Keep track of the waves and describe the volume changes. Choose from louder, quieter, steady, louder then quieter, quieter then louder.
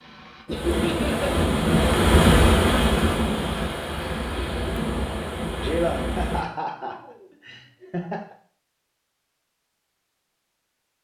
louder then quieter.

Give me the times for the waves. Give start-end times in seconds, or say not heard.
0.0-6.5.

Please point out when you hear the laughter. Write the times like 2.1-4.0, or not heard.
0.5-1.2, 5.6-8.3.